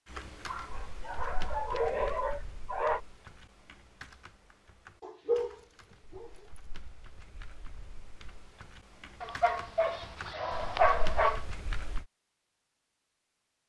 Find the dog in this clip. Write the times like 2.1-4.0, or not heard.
0.5-3.0, 5.0-6.6, 9.2-11.4.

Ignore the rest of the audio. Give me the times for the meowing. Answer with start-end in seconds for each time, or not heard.
not heard.